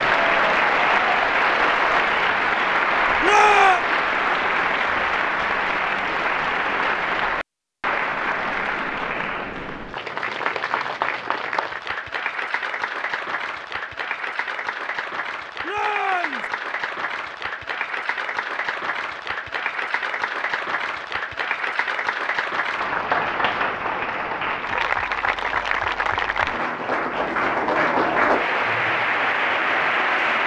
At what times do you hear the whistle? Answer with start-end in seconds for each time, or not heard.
not heard.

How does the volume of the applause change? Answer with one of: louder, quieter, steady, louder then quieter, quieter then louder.
quieter then louder.